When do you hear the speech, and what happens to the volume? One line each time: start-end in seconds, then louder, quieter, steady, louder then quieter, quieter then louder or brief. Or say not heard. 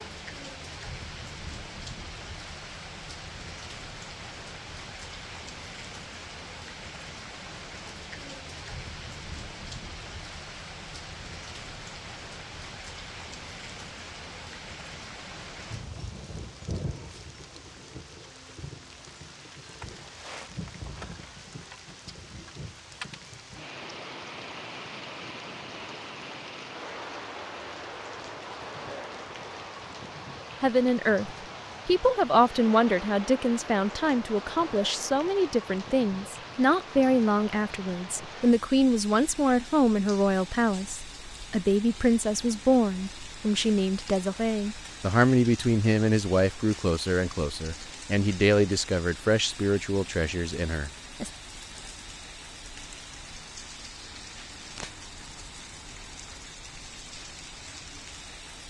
30.6-51.3 steady.